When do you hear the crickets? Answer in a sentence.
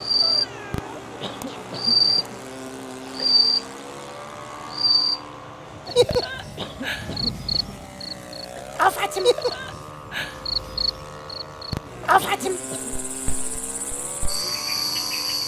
You can hear the crickets from 0.0 to 15.4 s.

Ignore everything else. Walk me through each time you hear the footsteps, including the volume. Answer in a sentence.
You can't hear the footsteps here.